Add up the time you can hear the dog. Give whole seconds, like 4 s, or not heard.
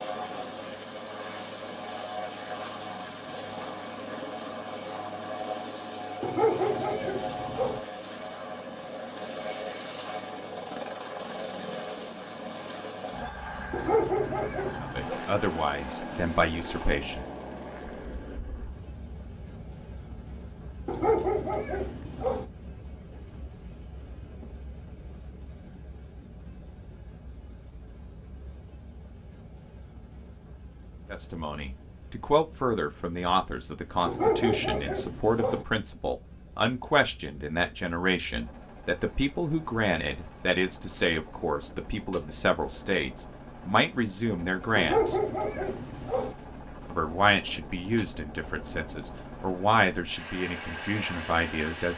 8 s.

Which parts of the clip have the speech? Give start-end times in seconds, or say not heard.
14.8-17.2, 31.1-45.1, 46.9-51.9.